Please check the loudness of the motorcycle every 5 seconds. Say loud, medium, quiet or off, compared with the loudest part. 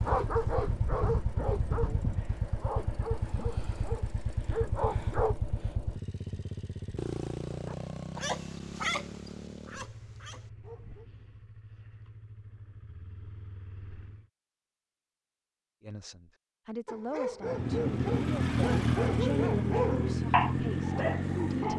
medium, medium, quiet, loud, loud.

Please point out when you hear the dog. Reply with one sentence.
The dog can be heard from 0.0 to 5.3 s, from 7.5 to 11.1 s and from 16.9 to 21.7 s.